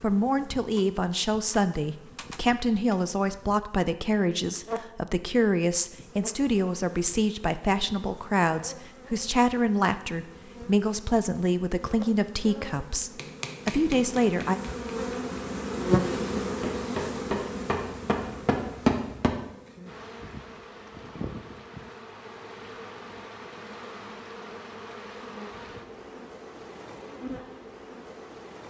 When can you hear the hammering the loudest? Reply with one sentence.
The loudest moment of the hammering is at 19 seconds.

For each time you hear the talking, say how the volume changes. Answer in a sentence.
The talking can be heard from 0.0 to 14.6 s, at a steady volume.